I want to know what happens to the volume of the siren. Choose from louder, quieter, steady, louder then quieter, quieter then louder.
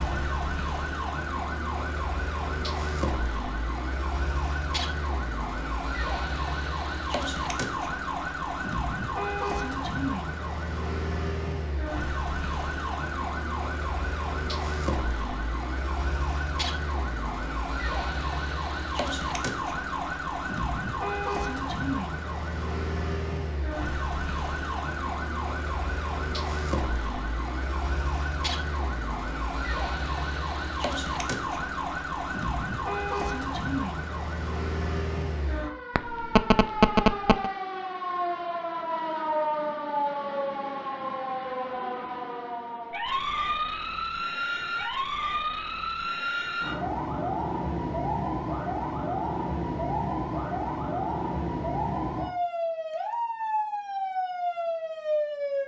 steady.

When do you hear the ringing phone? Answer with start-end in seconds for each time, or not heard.
36.0-37.5.